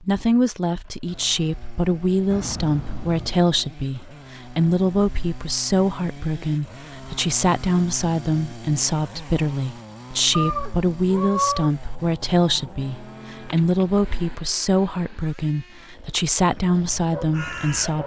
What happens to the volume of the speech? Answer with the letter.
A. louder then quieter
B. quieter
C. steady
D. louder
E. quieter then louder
C.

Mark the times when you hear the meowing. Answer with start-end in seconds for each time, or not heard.
2.3-3.5, 10.3-11.7.